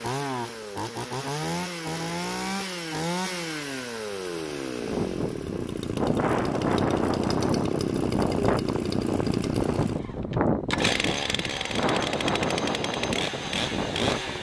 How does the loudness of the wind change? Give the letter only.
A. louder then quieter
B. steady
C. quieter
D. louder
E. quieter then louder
B.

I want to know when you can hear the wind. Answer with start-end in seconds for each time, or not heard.
4.8-14.3.